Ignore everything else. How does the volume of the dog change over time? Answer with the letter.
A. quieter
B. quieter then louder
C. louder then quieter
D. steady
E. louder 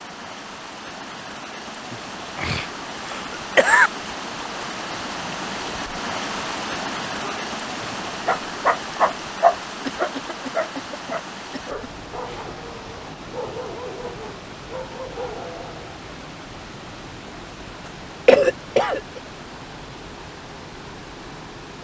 A.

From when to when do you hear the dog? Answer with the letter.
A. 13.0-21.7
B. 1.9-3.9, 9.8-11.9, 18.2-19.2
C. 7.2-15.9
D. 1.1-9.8
C.